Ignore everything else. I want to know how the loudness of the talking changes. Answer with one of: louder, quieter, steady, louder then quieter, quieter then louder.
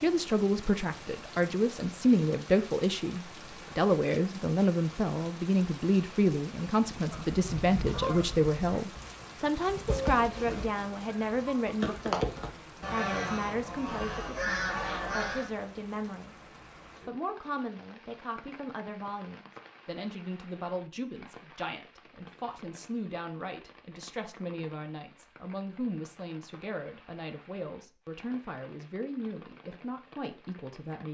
quieter.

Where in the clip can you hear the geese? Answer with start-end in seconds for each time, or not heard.
7.0-15.5.